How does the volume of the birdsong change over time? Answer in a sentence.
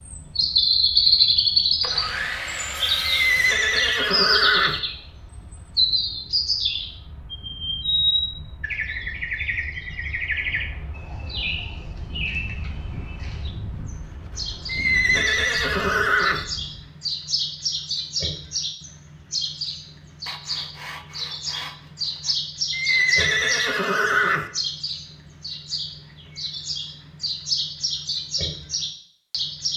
The loudness of the birdsong goes down.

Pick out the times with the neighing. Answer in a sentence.
The neighing can be heard from 3.1 to 4.8 s, from 14.7 to 16.4 s and from 22.7 to 24.5 s.